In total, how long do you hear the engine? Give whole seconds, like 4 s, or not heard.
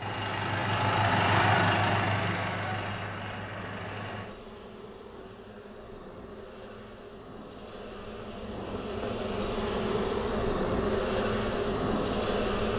4 s.